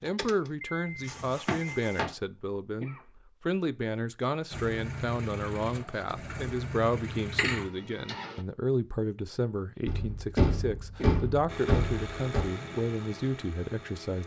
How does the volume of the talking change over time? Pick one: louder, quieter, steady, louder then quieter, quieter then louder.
steady.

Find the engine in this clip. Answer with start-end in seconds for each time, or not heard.
0.0-2.0, 4.5-8.4, 11.4-14.2.